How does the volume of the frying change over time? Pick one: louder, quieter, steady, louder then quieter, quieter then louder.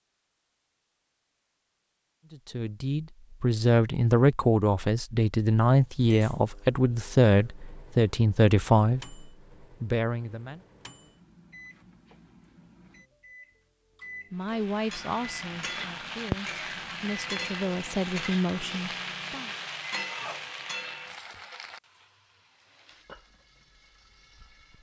quieter.